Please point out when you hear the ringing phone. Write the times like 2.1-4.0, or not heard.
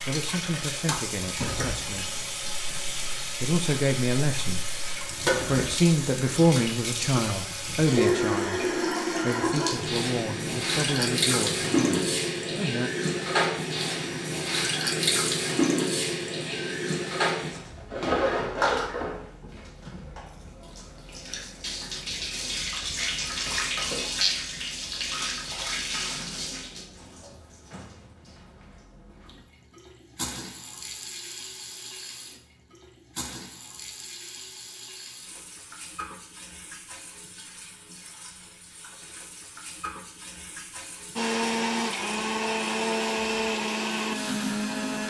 not heard.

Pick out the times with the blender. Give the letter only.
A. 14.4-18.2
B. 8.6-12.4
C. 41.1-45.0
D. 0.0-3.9
C.